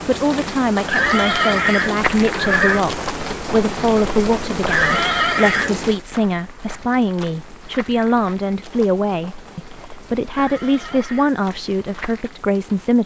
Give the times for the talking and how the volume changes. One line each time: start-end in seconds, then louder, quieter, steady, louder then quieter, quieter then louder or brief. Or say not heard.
0.1-13.0 steady.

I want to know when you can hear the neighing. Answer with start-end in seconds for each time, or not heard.
0.8-2.9, 4.7-5.8, 10.3-11.4.